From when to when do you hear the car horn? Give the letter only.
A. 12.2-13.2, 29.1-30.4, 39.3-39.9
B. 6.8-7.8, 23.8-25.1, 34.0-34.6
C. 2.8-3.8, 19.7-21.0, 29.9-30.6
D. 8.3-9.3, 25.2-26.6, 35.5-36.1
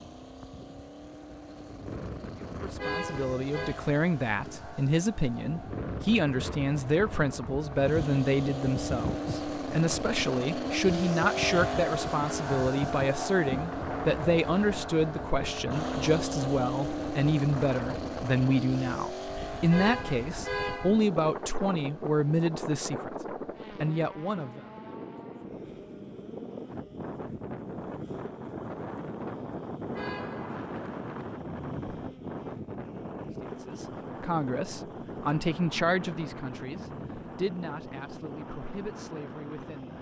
C.